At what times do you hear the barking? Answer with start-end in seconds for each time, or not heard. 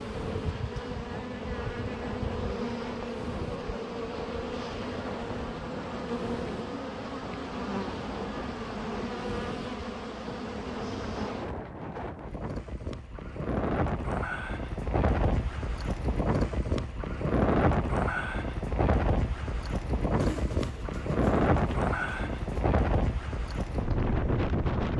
not heard.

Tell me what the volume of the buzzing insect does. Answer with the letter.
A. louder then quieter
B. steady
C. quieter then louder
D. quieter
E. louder
B.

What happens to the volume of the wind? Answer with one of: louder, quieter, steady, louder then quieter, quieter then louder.
louder.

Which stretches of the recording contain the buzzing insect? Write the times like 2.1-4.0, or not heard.
0.0-11.5.